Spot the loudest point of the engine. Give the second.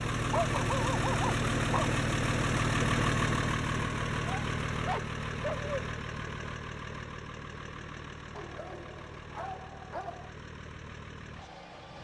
3 s.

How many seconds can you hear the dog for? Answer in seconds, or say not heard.
5 s.